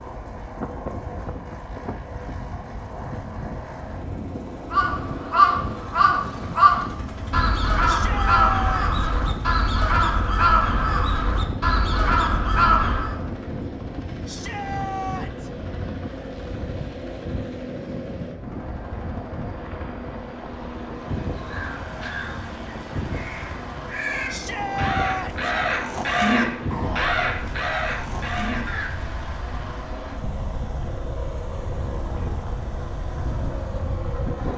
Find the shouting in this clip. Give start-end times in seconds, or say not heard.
7.8-8.9, 14.2-15.5, 24.3-25.5.